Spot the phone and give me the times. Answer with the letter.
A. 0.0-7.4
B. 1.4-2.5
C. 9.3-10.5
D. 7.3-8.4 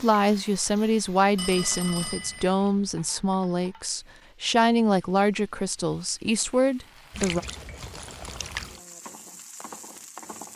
B.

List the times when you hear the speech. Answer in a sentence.
You can hear the speech from 0.0 to 7.4 s.